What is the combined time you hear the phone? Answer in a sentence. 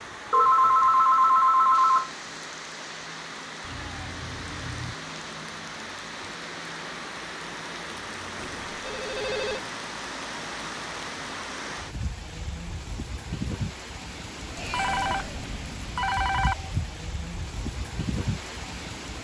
You can hear the phone for 5 seconds altogether.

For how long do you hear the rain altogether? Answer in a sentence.
The rain can be heard for 19 seconds in total.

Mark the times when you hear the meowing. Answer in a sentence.
The meowing can be heard from 3.6 to 5.0 s and from 14.6 to 15.6 s.